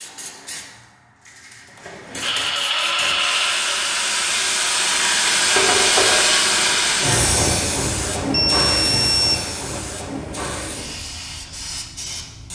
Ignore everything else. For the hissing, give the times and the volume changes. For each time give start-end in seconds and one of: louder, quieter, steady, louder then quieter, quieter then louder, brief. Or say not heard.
0.0-12.5 louder then quieter.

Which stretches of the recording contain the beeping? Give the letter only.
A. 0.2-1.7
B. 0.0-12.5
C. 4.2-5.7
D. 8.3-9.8
D.